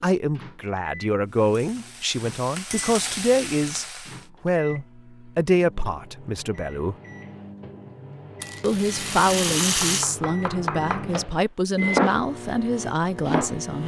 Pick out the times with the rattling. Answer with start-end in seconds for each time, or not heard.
8.4-10.1.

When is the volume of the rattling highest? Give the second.
10 s.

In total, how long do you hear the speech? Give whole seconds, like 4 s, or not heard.
12 s.